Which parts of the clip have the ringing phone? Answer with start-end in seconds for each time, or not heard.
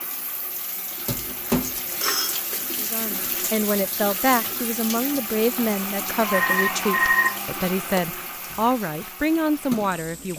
1.0-2.4, 5.5-8.0.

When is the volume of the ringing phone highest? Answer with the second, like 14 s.
7 s.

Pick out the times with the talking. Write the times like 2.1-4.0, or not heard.
2.8-10.3.